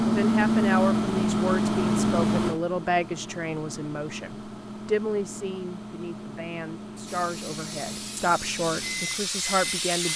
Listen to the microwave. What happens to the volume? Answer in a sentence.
The volume of the microwave goes down.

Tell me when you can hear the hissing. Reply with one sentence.
You can hear the hissing from 7.0 to 10.1 s.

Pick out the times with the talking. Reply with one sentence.
The talking can be heard from 0.0 to 10.1 s.